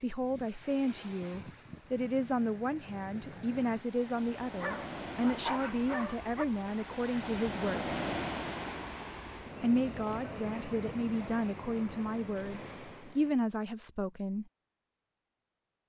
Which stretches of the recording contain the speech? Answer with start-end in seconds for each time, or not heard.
0.0-7.8, 9.6-14.4.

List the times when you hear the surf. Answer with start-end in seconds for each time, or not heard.
0.0-13.4.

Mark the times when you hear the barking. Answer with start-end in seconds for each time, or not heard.
4.6-6.5.